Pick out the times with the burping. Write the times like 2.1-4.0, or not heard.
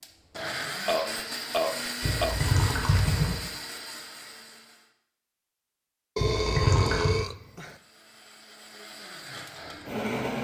0.8-2.4, 6.2-7.8.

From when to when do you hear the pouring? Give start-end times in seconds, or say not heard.
2.0-3.4, 6.2-7.2.